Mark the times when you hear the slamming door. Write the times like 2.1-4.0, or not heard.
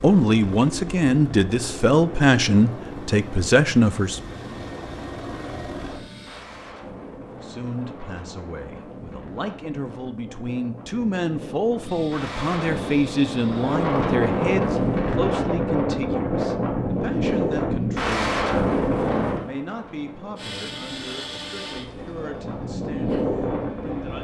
not heard.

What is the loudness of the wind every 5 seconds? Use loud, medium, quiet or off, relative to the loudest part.
quiet, quiet, loud, loud, medium.